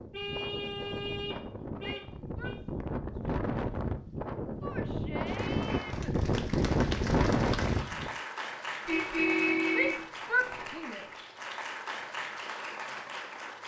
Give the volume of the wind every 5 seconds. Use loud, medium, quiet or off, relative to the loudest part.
medium, loud, off.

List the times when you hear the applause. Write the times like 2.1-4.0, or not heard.
5.2-13.6.